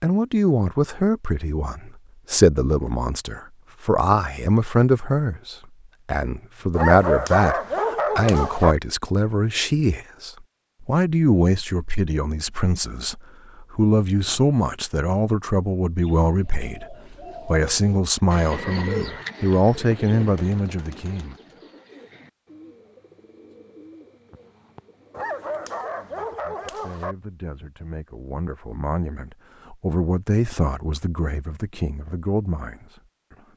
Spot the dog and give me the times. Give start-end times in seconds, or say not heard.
6.7-8.8, 25.1-27.1.